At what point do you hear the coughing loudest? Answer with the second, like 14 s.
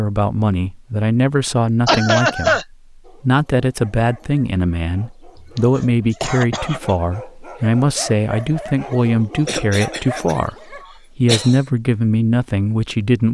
2 s.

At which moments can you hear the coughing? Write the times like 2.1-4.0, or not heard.
1.9-2.6, 5.3-7.0, 9.4-11.6.